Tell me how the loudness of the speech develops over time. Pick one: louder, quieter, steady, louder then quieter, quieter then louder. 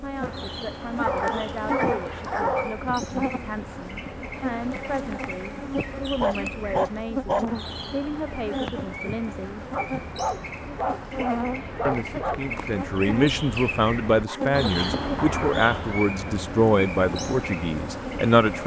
louder.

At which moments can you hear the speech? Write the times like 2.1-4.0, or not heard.
0.0-9.7, 11.8-18.6.